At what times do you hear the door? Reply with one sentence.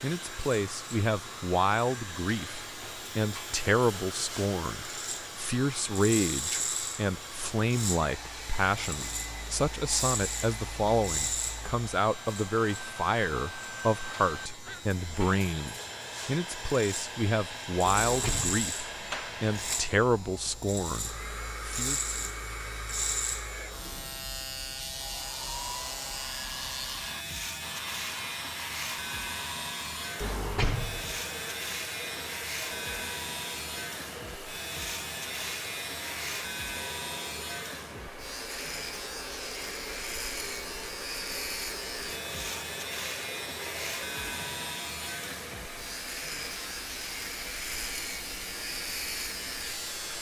The door can be heard from 17.9 to 19.8 s and from 30.2 to 31.1 s.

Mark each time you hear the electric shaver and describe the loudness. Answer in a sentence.
You can hear the electric shaver from 0.0 to 50.1 s, at a steady volume.